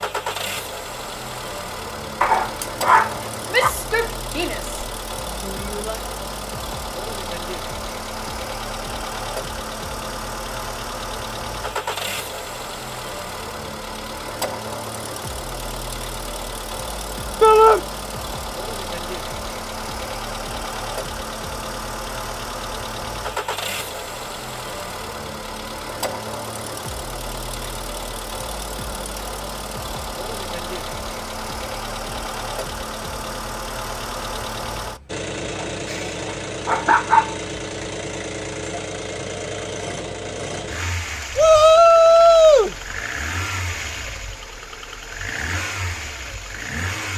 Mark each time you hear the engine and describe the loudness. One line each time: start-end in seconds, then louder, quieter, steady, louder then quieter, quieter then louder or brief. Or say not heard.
0.0-47.1 steady.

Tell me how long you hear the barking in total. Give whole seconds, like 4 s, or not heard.
3 s.